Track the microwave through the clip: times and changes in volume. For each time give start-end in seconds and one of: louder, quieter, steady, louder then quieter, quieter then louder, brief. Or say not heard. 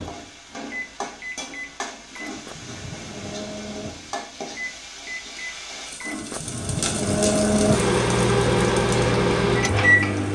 0.0-10.2 louder.